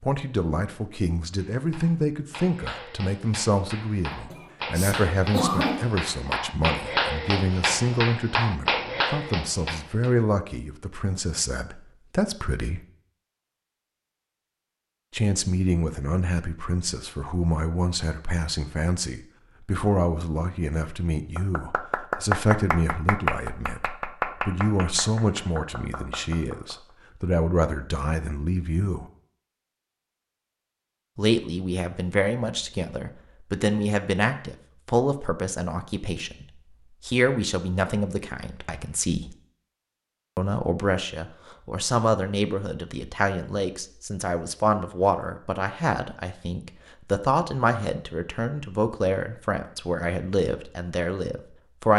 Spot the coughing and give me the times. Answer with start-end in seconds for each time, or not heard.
4.1-5.8.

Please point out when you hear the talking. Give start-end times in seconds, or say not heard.
0.0-12.8, 15.1-29.1, 31.1-39.4, 40.4-51.9.